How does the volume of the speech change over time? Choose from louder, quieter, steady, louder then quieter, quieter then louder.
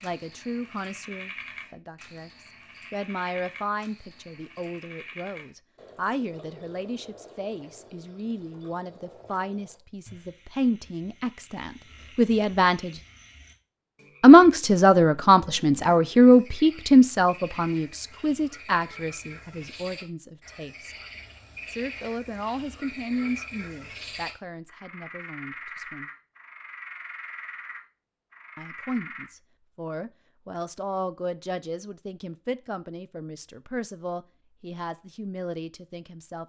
louder then quieter.